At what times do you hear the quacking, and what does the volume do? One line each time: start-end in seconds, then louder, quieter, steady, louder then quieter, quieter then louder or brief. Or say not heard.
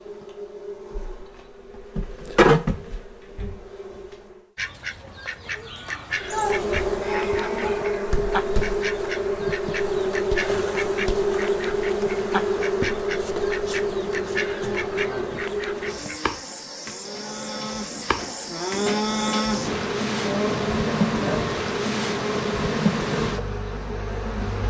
4.5-16.2 steady.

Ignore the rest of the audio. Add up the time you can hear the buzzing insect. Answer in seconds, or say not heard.
23 s.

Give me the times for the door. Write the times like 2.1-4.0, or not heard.
3.2-3.8.